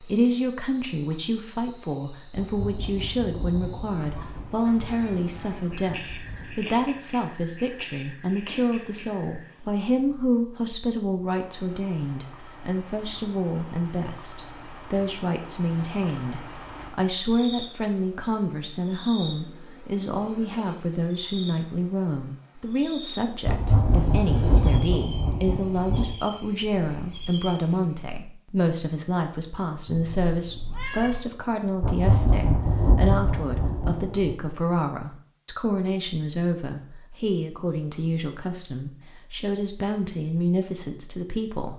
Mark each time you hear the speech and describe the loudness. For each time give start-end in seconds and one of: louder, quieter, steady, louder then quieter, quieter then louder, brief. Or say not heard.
0.0-41.7 steady.